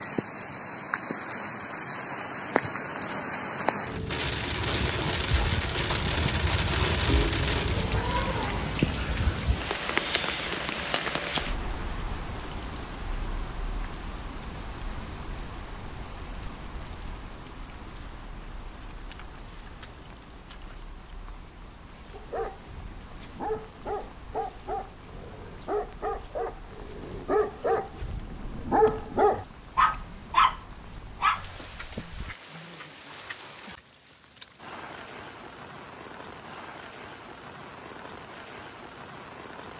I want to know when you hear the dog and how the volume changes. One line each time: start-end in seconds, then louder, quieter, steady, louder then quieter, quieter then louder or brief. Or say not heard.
22.1-32.4 louder.